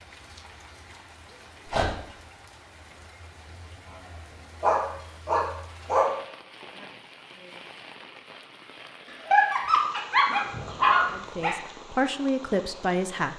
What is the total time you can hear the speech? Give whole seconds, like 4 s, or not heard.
2 s.